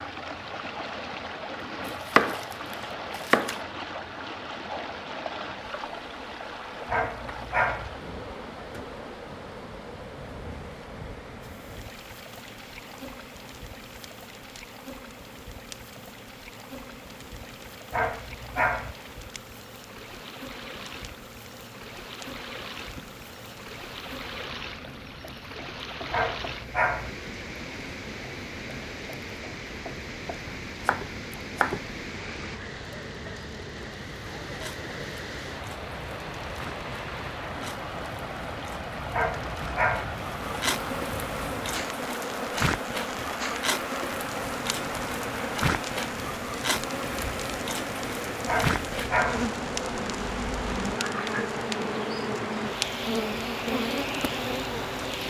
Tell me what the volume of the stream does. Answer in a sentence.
The loudness of the stream goes down, then up.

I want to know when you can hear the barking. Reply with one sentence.
The barking can be heard from 6.8 to 7.9 s, from 17.9 to 18.9 s, from 26.1 to 27.1 s, from 39.1 to 40.1 s and from 48.5 to 49.5 s.